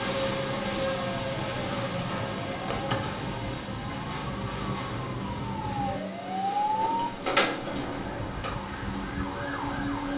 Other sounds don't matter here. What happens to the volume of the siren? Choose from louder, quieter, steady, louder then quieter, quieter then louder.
louder then quieter.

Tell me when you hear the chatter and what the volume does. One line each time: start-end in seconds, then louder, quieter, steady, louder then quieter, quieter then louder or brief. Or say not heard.
not heard.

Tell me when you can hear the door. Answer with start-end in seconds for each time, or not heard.
2.5-3.2, 6.6-8.6.